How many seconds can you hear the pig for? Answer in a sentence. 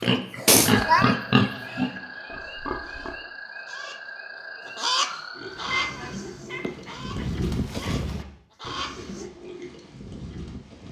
The pig can be heard for 9 seconds in total.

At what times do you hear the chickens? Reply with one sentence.
You can hear the chickens from 2.8 to 9.2 s.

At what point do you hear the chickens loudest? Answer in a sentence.
The loudest moment of the chickens is at 5 seconds.